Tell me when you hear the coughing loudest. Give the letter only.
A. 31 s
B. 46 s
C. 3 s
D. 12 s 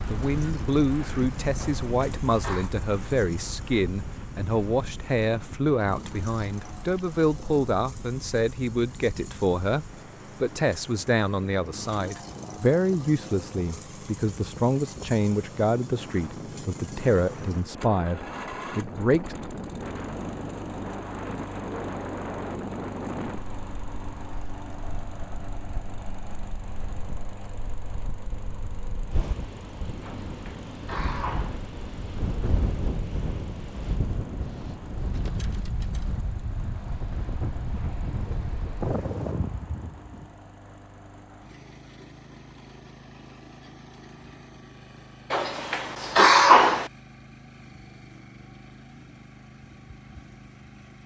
B.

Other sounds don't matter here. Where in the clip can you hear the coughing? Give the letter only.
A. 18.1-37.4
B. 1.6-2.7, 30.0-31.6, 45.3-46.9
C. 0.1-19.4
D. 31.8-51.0
B.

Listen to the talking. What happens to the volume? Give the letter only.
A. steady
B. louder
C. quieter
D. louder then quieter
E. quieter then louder
A.